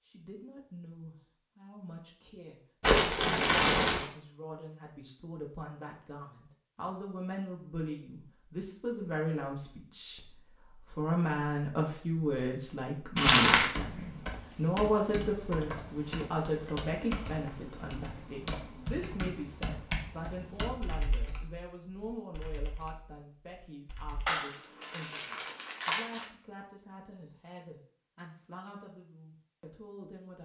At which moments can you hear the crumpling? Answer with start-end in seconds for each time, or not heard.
2.8-4.0, 13.2-13.7, 24.2-26.2.